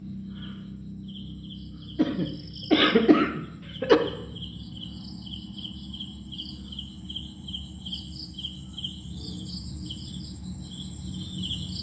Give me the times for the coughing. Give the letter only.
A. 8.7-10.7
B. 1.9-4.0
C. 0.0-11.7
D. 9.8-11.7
B.